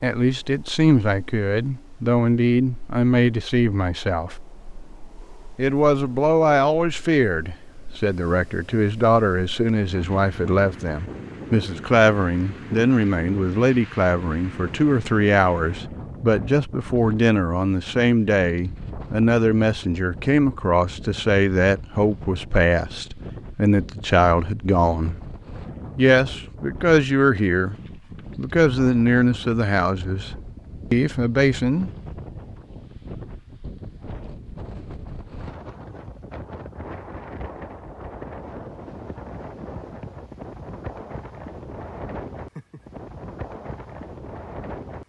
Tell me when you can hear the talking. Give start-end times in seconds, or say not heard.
0.0-4.3, 5.5-25.1, 25.9-27.8, 28.4-31.9.